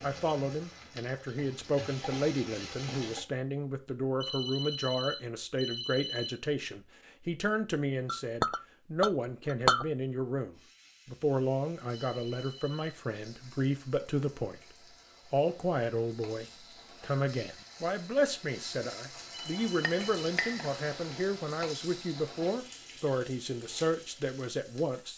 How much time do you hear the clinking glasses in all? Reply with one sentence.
The clinking glasses can be heard for 3 seconds in total.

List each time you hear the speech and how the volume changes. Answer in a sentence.
You can hear the speech from 0.0 to 14.6 s, at a steady volume; and from 15.2 to 25.1 s, at a steady volume.